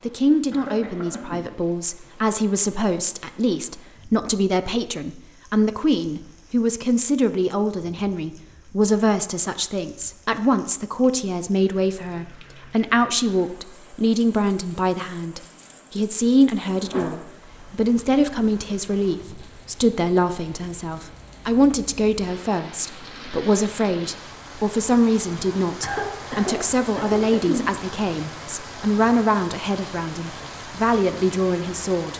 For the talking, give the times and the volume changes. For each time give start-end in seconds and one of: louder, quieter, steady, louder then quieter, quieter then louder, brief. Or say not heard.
0.1-32.1 steady.